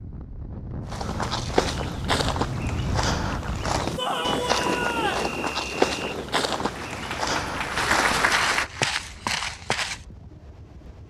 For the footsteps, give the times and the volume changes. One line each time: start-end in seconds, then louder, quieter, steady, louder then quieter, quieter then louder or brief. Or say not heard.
0.8-10.0 steady.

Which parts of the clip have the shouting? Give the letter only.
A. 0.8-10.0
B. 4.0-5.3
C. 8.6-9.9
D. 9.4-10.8
B.